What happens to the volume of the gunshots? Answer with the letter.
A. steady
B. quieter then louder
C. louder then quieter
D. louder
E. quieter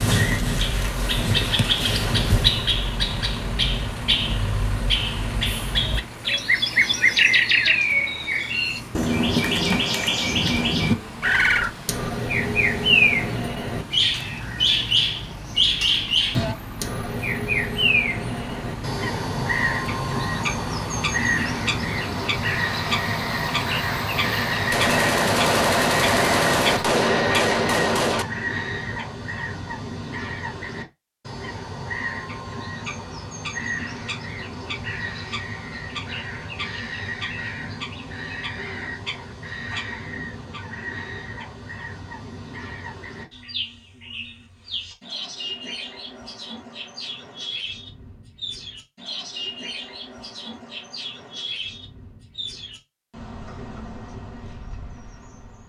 A.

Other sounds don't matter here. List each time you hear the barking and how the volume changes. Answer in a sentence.
The barking can't be heard in this clip.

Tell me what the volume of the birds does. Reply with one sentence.
The loudness of the birds goes down.